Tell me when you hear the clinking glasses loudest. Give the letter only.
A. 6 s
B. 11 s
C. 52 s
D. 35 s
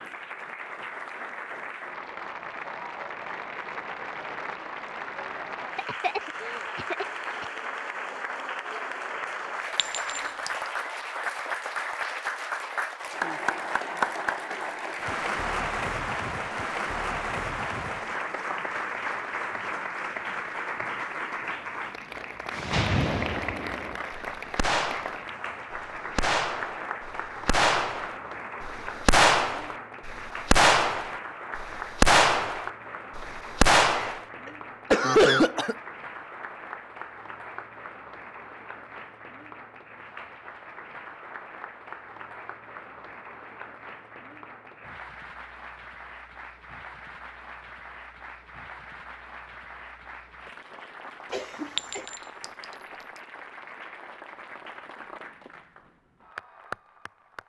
C.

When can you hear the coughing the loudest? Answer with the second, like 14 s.
35 s.